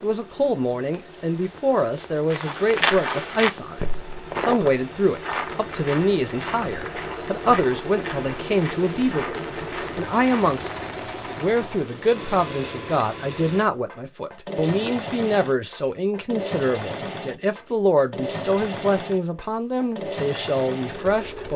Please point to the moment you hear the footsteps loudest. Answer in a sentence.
The loudest moment of the footsteps is at 3 seconds.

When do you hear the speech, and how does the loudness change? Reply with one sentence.
You can hear the speech from 0.0 to 21.5 s, at a steady volume.